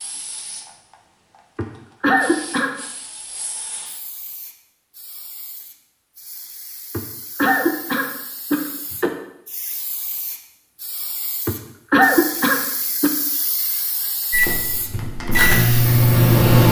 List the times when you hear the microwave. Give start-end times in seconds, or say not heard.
14.3-16.6.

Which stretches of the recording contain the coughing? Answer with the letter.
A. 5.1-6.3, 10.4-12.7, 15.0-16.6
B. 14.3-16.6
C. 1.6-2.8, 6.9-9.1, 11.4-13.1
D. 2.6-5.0
C.